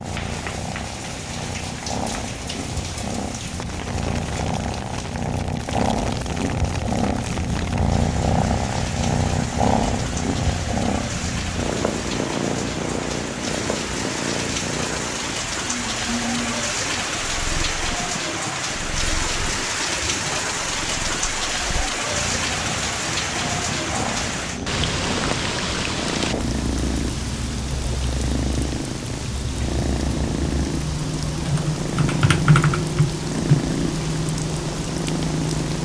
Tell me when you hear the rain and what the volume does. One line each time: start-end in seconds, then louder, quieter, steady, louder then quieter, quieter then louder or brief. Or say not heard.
0.0-35.8 louder.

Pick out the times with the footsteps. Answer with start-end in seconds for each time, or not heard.
not heard.